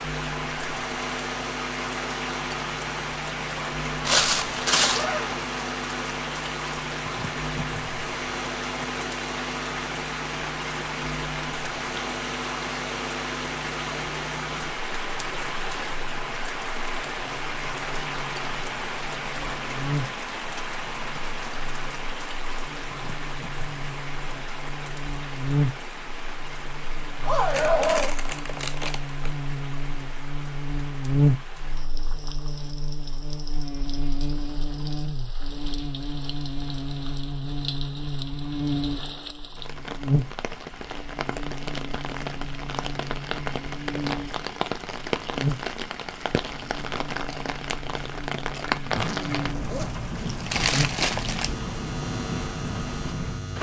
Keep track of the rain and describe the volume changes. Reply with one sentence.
The loudness of the rain goes down, then up.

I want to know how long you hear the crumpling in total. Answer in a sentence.
You can hear the crumpling for 4 seconds altogether.